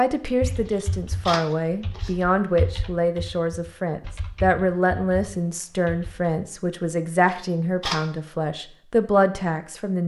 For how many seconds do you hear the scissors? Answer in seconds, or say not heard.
2 s.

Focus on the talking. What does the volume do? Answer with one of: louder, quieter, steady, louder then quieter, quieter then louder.
steady.